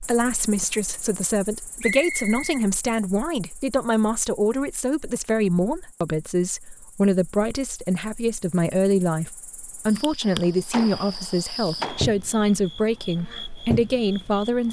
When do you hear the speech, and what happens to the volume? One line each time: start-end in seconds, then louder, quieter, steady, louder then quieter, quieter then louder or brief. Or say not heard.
0.0-14.6 steady.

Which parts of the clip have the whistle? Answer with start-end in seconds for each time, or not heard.
1.8-2.6.